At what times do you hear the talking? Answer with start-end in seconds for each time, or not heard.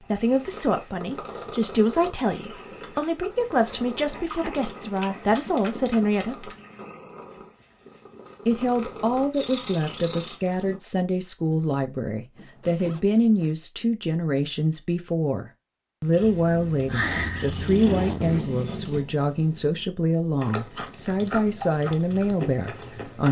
0.0-6.5, 8.4-23.2.